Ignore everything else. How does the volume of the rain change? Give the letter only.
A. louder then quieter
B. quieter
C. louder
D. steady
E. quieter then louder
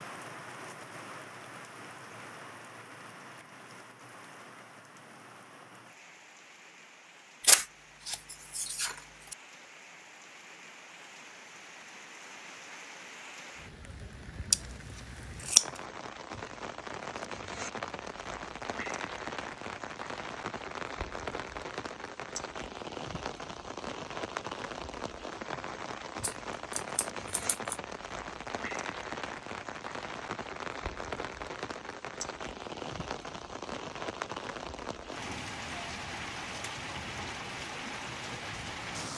C.